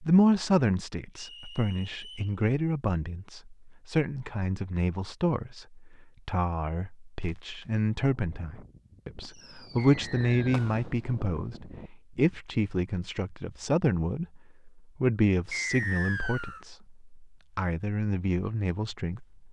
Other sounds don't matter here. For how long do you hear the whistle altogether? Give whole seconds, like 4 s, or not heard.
3 s.